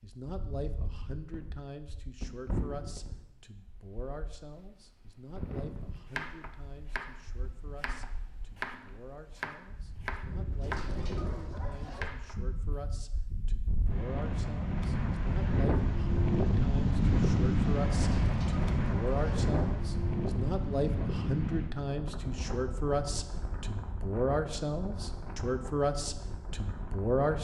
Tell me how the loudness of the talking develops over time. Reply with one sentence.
The loudness of the talking goes down, then up.